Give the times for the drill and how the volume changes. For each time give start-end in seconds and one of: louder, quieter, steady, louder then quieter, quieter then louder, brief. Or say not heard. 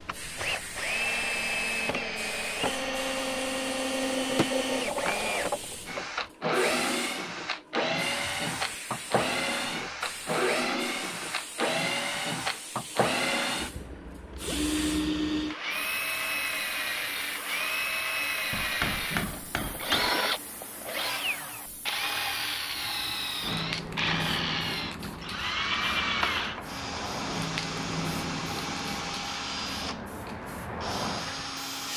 0.0-31.9 steady.